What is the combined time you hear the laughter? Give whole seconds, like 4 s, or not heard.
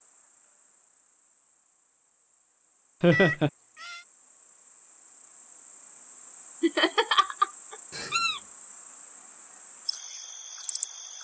2 s.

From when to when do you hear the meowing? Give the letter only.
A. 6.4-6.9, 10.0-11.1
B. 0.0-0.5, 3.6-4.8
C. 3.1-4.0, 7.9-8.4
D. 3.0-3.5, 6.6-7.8
C.